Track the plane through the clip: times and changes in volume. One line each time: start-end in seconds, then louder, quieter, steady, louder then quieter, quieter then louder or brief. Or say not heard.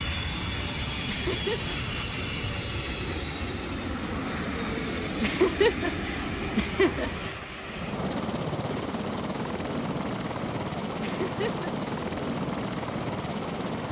0.0-13.8 steady.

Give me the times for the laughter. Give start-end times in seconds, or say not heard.
1.1-1.8, 5.2-7.3, 11.0-11.7.